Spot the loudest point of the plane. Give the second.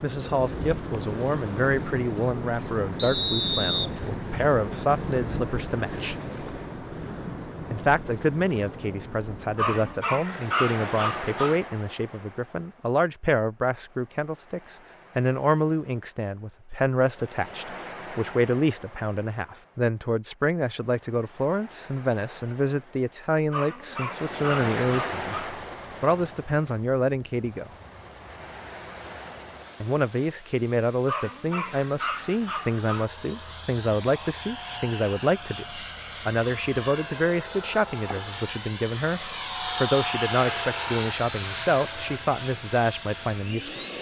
40 s.